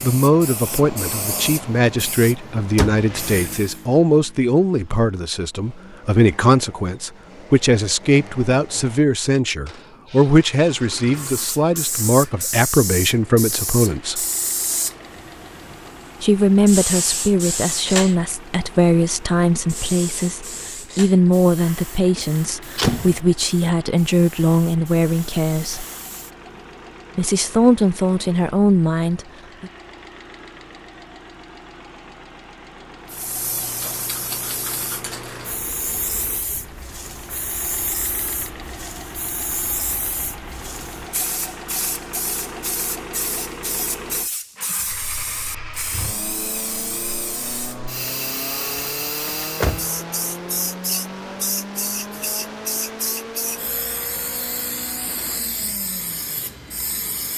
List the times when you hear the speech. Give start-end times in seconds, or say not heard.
0.0-14.2, 16.2-25.9, 27.1-29.7.